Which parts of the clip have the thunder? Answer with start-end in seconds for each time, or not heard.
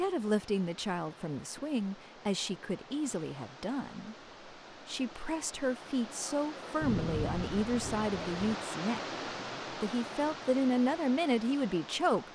6.8-8.6.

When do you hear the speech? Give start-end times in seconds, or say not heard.
0.0-4.2, 4.8-9.0, 9.7-12.3.